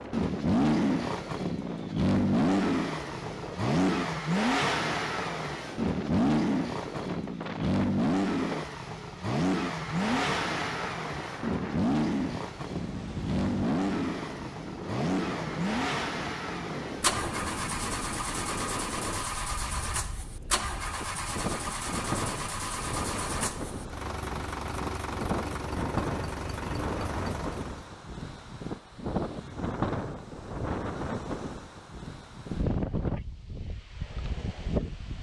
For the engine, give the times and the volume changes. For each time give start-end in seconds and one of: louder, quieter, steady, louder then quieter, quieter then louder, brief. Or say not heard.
0.0-27.9 quieter.